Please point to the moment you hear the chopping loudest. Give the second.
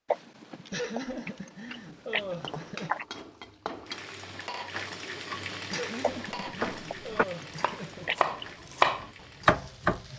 9 s.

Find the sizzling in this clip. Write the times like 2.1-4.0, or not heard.
1.7-10.1.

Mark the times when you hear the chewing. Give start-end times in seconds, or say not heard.
0.1-3.0, 6.0-8.4.